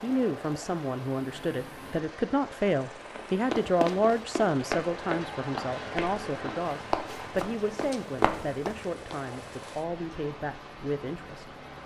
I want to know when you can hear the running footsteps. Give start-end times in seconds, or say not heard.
3.1-9.2.